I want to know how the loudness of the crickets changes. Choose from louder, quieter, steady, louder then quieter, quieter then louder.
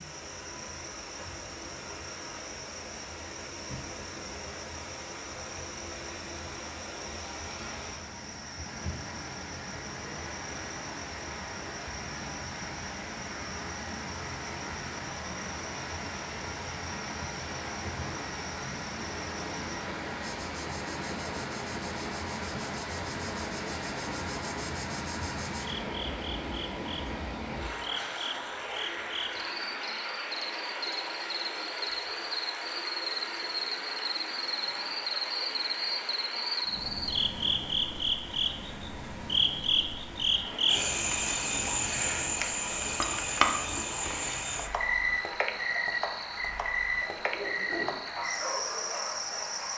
louder.